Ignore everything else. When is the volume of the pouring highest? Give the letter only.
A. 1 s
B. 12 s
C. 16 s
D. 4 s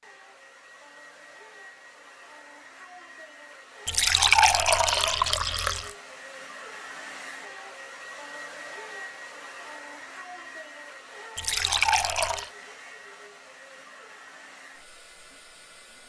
D.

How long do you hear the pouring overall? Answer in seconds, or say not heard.
3 s.